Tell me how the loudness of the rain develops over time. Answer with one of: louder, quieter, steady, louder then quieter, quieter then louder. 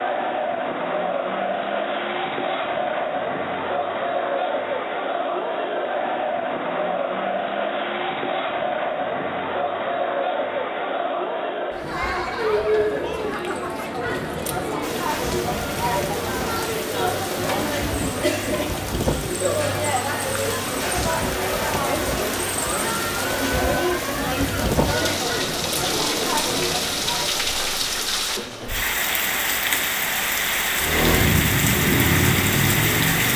louder.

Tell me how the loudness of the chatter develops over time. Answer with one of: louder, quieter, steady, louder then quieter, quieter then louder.
steady.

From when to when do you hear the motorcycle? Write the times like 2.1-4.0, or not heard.
30.8-33.3.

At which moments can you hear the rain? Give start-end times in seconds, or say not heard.
14.8-33.3.